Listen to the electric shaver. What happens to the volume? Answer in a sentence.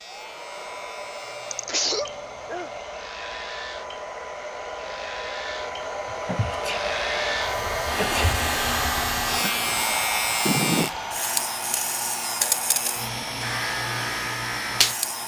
The loudness of the electric shaver goes up.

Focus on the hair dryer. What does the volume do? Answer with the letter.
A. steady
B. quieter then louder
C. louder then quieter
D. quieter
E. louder
C.